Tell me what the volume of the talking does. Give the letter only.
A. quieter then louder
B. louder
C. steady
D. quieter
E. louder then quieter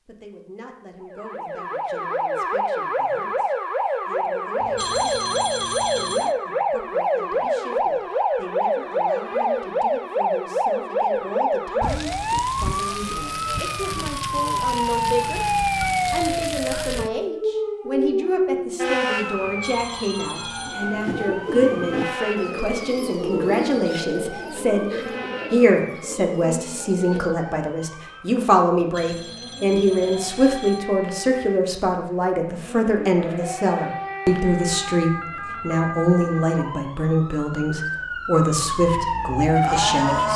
B.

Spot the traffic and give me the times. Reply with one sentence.
The traffic can't be heard in this clip.